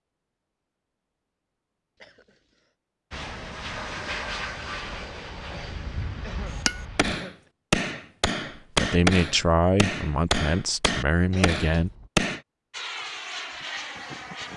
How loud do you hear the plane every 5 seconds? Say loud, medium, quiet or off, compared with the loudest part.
loud, medium, loud.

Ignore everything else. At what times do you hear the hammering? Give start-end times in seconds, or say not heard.
6.5-12.4.